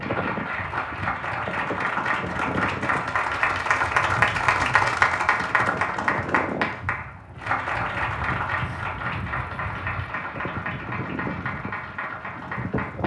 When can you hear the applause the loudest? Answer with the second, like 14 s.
5 s.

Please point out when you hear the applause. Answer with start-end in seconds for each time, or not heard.
0.0-13.0.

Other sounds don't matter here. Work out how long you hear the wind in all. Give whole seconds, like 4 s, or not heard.
13 s.